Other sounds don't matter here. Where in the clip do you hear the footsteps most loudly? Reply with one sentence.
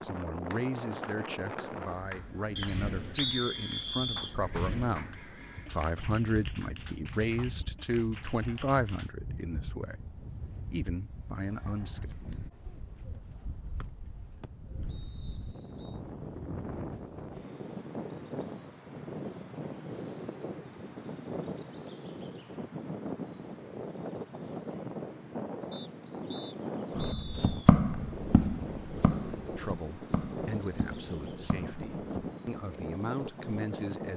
The loudest moment of the footsteps is at 28 seconds.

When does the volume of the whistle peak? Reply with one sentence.
The volume of the whistle peaks at 3 seconds.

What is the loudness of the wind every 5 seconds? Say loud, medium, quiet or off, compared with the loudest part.
loud, medium, medium, loud, loud, loud, loud.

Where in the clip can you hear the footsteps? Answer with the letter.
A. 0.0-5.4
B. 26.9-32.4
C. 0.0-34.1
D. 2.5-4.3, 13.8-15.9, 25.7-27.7
B.